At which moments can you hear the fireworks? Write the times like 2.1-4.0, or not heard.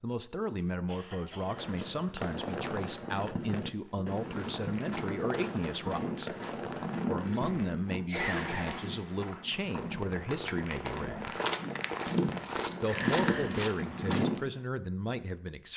1.4-12.8.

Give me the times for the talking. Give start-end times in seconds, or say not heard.
0.0-6.3, 7.0-11.3, 12.8-15.7.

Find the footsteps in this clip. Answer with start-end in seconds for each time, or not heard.
3.9-14.5.